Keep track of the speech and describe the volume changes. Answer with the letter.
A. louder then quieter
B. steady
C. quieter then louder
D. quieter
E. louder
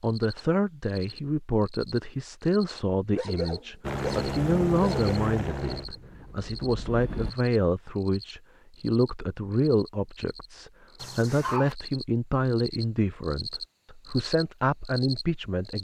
B.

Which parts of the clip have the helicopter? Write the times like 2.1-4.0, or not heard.
3.8-7.3.